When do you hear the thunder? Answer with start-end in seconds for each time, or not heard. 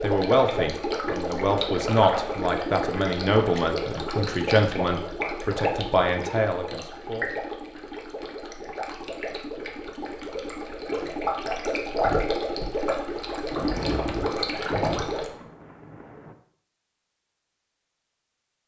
13.4-16.4.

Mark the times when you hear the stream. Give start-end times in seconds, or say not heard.
0.0-15.3.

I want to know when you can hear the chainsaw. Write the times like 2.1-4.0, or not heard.
not heard.